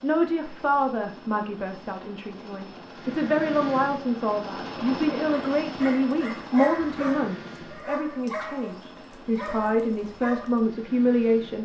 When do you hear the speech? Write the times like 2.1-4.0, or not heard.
0.0-11.5.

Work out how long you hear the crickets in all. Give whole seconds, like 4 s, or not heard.
not heard.